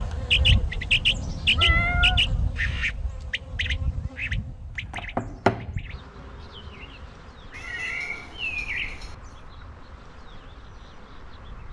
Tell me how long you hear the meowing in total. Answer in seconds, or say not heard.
3 s.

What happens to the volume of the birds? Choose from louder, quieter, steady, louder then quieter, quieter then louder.
quieter.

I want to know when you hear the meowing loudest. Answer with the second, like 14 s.
2 s.